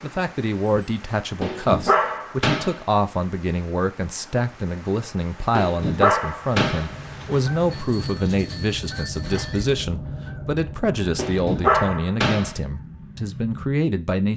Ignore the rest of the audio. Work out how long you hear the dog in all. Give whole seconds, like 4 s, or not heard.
5 s.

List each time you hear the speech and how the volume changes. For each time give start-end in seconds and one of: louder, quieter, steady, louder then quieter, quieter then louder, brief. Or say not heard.
0.0-14.3 steady.